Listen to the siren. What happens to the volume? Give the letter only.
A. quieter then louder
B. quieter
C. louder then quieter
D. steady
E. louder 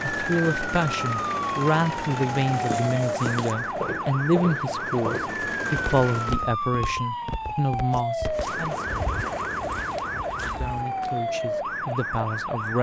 D.